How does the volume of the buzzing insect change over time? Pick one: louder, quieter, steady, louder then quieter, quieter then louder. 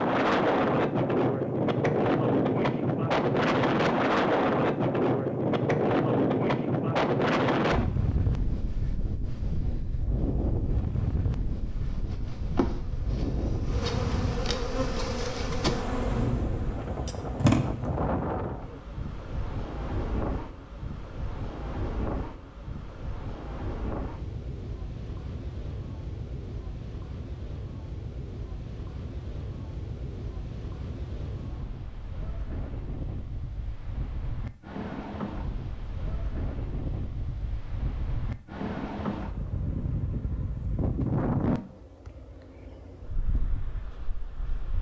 louder.